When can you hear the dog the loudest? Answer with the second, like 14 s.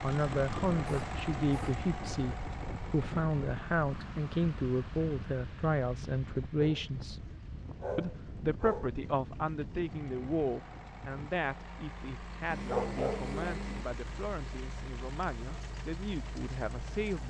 13 s.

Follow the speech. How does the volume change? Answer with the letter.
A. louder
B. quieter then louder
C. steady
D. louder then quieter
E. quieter
E.